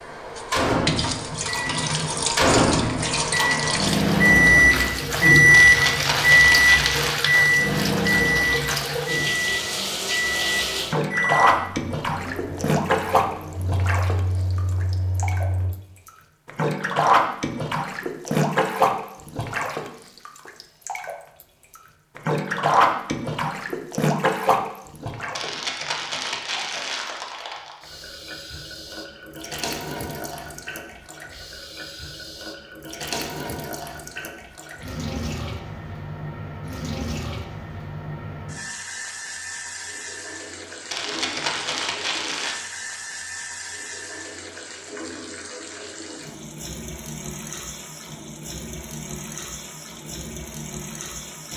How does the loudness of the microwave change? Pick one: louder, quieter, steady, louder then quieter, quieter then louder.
louder then quieter.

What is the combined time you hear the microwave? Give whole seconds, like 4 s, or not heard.
16 s.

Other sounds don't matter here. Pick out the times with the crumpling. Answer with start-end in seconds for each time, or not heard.
5.5-7.2, 25.4-27.8, 40.9-42.5.